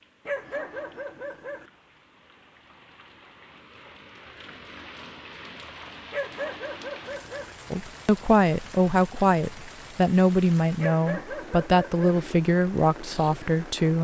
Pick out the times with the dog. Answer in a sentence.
You can hear the dog from 0.2 to 1.6 s, from 6.1 to 7.5 s and from 10.8 to 12.2 s.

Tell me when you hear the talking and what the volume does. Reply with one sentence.
You can hear the talking from 7.7 to 13.9 s, at a steady volume.